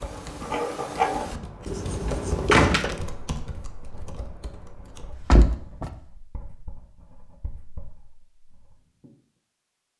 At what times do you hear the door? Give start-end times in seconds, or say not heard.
2.5-3.0, 5.2-6.0.